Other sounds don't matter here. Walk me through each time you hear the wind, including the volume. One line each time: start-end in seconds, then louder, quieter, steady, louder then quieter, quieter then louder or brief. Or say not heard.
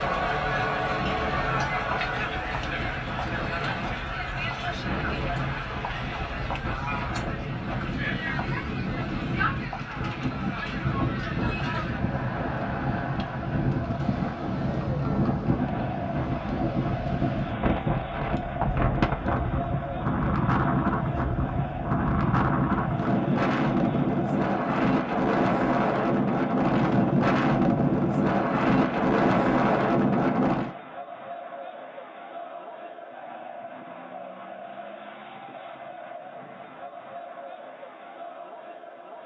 0.0-30.8 louder.